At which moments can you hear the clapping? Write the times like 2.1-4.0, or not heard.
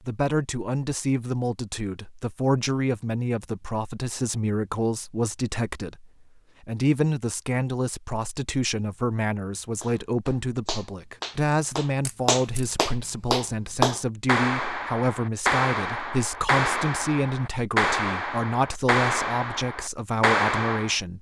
9.8-20.9.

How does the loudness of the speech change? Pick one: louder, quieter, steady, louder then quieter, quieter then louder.
steady.